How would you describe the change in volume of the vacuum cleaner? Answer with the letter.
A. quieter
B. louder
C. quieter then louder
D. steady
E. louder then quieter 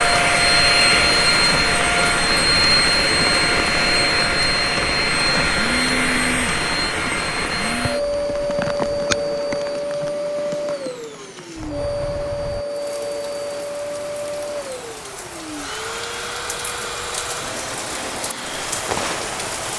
A.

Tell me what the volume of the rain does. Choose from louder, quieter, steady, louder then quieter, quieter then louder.
quieter then louder.